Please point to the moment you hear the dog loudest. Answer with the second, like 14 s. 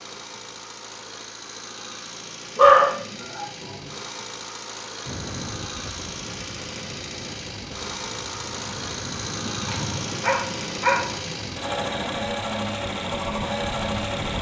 3 s.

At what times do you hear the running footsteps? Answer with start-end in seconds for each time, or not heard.
not heard.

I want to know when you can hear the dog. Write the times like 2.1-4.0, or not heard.
2.5-3.9, 9.7-11.1.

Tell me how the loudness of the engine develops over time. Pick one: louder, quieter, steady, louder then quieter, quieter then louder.
louder.